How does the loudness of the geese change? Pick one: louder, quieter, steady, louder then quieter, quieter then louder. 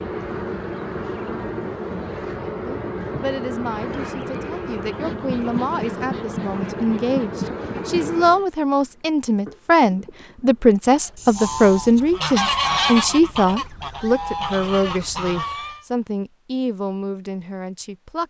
louder then quieter.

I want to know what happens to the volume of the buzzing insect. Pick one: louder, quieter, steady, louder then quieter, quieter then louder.
quieter.